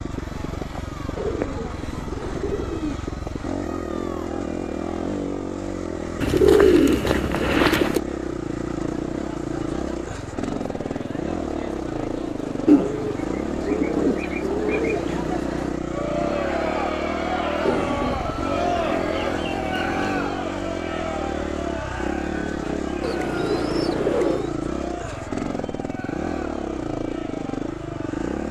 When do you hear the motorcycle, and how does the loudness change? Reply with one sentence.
The motorcycle can be heard from 0.0 to 28.4 s, at a steady volume.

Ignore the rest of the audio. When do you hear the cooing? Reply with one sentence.
The cooing can be heard from 1.1 to 3.0 s, from 6.2 to 8.0 s, from 12.7 to 15.2 s, from 17.6 to 20.1 s and from 23.0 to 24.6 s.